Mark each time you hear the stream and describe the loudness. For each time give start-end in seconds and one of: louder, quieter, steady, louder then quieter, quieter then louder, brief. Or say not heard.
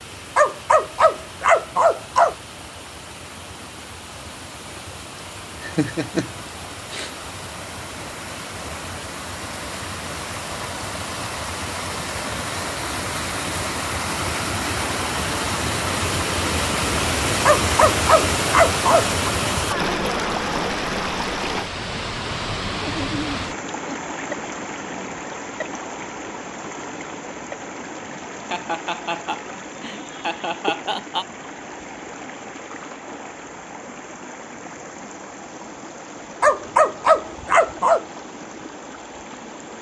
0.0-39.7 louder then quieter.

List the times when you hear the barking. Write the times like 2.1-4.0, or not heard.
0.3-2.4, 17.4-19.1, 36.4-38.0.